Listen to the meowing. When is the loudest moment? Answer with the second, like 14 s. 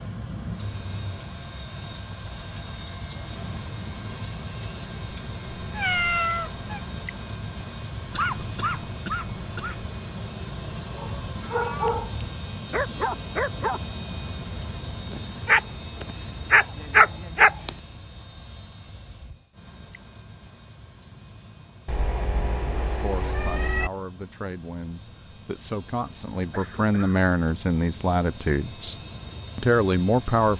6 s.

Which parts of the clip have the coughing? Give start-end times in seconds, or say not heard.
8.1-9.8, 26.4-27.2.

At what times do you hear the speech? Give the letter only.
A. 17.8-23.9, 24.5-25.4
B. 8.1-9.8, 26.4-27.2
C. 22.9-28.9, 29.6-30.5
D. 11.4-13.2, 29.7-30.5
C.